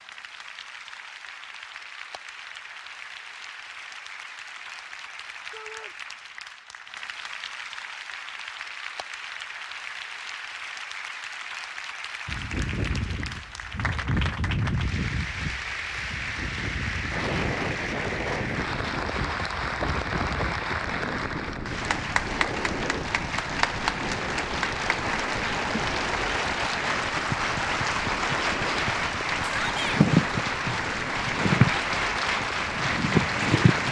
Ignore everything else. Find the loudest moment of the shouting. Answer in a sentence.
The volume of the shouting peaks at 30 seconds.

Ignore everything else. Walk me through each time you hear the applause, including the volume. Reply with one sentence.
You can hear the applause from 0.0 to 33.8 s, getting louder.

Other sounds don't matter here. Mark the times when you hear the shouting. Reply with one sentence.
You can hear the shouting from 5.5 to 6.0 s and from 29.4 to 30.0 s.